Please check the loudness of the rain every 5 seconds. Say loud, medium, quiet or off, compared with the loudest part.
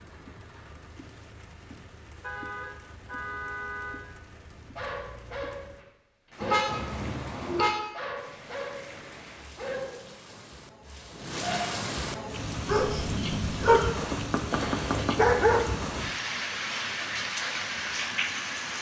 quiet, quiet, loud, loud.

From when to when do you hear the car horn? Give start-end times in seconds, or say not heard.
2.2-4.0, 6.4-7.8, 14.5-15.1.